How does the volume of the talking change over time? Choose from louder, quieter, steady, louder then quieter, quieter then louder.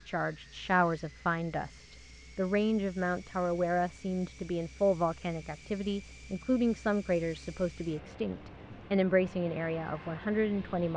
steady.